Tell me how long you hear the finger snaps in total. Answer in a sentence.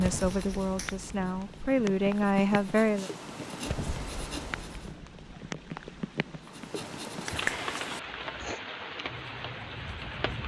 The finger snaps can be heard for 2 seconds in total.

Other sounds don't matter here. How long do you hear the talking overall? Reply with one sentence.
The talking can be heard for 3 seconds in total.